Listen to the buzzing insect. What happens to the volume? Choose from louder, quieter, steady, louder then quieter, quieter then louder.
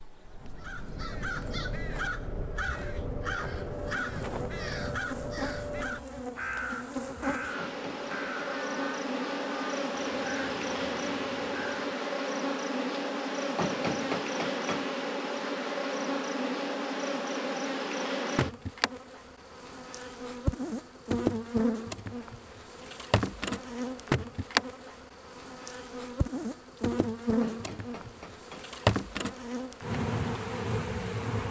louder.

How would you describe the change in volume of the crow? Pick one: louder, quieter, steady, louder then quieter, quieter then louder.
quieter.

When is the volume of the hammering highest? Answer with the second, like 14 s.
14 s.